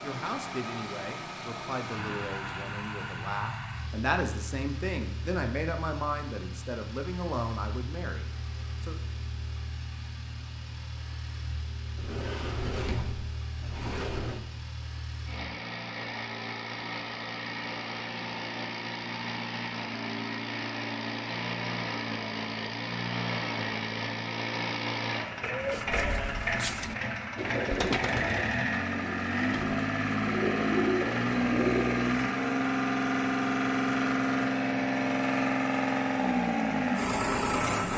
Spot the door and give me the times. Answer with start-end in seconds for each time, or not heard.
11.9-14.4.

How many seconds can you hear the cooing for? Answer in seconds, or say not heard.
7 s.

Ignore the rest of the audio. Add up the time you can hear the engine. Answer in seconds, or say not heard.
38 s.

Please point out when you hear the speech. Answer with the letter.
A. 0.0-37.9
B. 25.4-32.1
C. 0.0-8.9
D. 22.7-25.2
C.